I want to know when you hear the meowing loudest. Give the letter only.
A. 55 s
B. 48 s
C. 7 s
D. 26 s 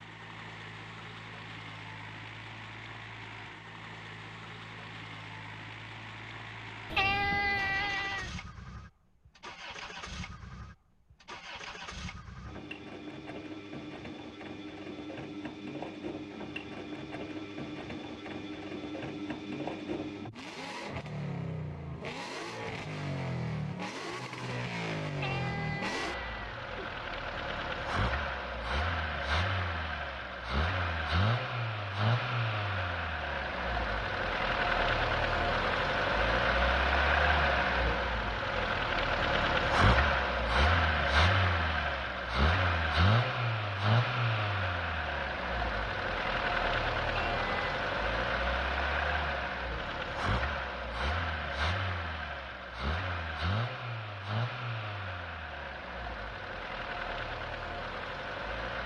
C.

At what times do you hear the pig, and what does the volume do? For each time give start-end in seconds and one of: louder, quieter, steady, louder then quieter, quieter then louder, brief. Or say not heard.
not heard.